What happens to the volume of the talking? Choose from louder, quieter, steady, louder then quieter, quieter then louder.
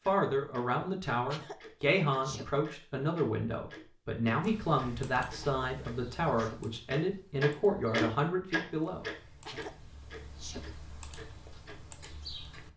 steady.